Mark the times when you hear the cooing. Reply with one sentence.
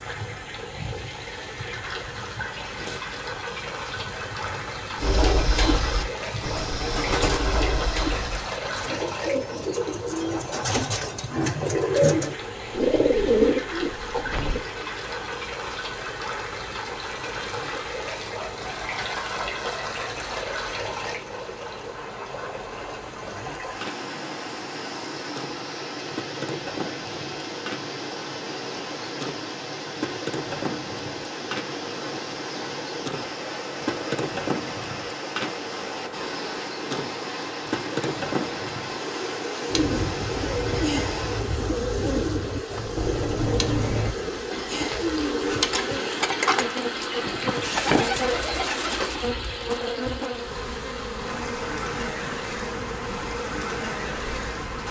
The cooing can be heard from 5.0 to 14.6 s and from 39.6 to 49.4 s.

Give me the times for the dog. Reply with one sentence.
You can't hear the dog here.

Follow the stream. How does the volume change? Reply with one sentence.
The loudness of the stream stays about the same.